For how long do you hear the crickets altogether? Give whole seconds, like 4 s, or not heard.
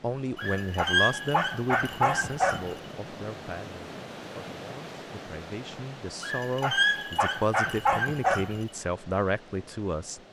not heard.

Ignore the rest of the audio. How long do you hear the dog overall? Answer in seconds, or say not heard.
5 s.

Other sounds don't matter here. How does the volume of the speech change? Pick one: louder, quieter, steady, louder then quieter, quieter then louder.
quieter then louder.